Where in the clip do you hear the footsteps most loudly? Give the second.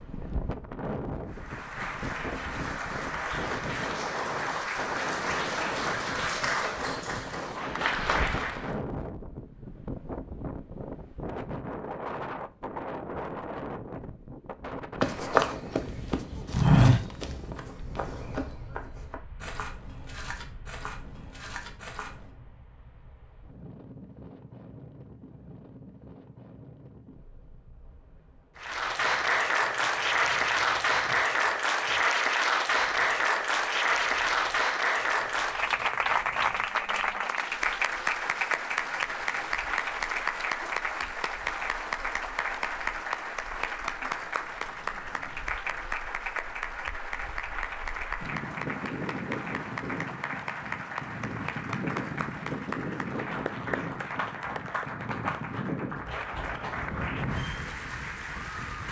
17 s.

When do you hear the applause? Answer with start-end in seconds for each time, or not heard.
1.2-8.8, 28.6-58.8.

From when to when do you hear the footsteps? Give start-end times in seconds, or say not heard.
15.0-22.3.